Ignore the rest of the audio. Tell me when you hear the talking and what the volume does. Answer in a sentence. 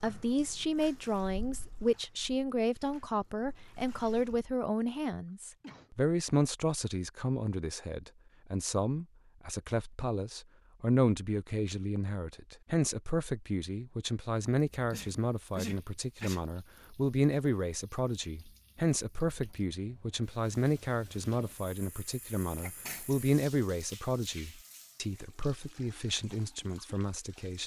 You can hear the talking from 0.0 to 27.6 s, at a steady volume.